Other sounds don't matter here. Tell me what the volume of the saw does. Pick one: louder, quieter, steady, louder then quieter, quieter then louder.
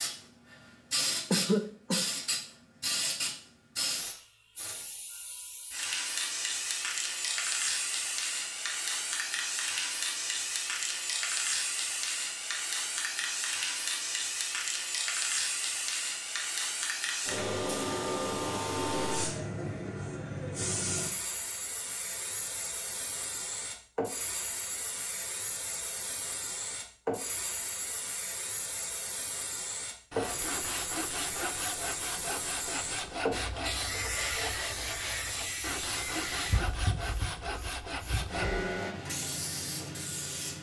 steady.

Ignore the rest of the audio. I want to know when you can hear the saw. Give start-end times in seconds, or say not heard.
30.1-38.5.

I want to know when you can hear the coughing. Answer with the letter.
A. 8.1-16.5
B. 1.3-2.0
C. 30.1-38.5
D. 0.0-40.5
B.